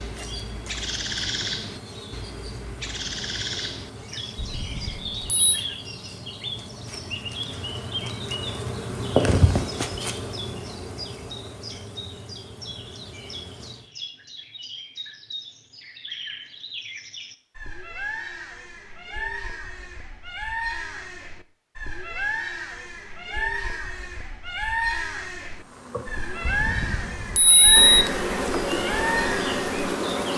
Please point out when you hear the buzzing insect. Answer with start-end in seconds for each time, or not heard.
0.0-13.9, 25.6-30.3.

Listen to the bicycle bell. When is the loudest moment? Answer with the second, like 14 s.
28 s.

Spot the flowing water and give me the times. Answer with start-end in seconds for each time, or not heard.
not heard.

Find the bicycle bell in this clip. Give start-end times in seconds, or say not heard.
4.3-5.5, 26.4-28.1.